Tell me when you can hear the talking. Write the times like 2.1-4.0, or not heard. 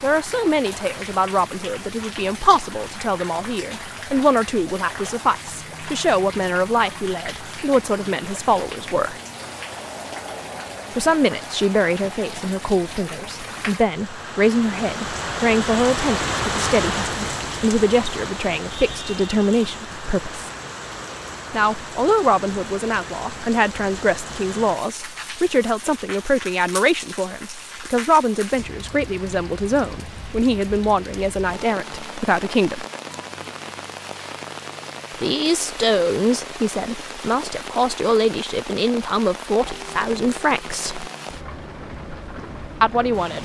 0.0-9.2, 10.9-20.5, 21.5-32.9, 35.2-41.1, 42.8-43.4.